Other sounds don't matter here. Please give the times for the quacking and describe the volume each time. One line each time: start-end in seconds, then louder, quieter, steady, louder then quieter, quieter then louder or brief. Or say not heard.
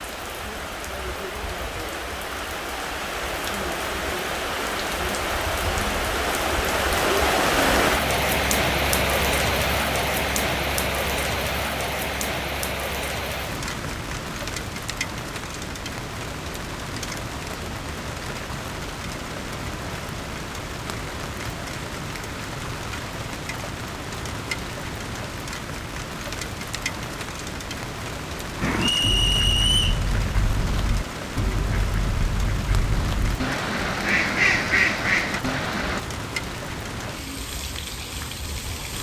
28.6-36.0 louder.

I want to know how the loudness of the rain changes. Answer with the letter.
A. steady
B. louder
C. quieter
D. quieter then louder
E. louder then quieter
C.